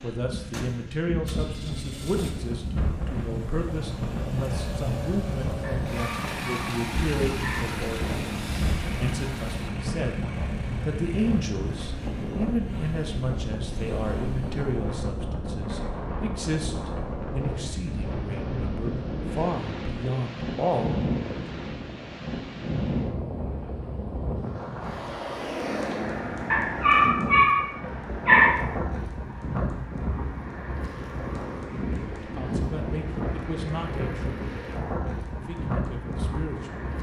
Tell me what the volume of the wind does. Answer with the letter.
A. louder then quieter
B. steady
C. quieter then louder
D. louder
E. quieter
B.